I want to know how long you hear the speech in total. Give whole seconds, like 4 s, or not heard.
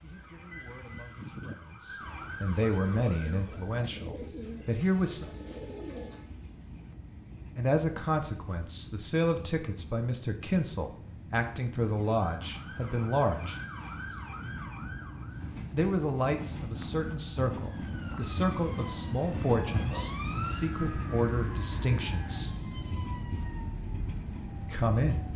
19 s.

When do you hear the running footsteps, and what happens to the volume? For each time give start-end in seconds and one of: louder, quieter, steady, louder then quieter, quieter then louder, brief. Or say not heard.
not heard.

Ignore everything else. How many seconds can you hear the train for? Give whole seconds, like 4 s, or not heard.
25 s.